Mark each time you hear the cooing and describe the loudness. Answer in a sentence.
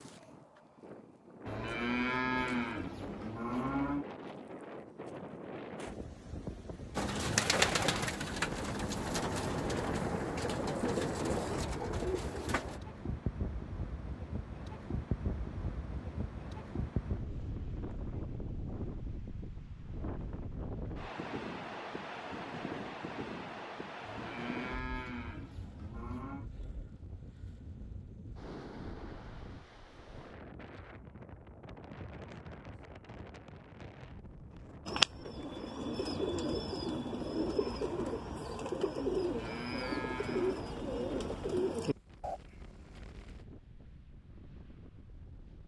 The cooing can be heard from 7.0 to 12.8 s, getting quieter; and from 34.9 to 42.4 s, at a steady volume.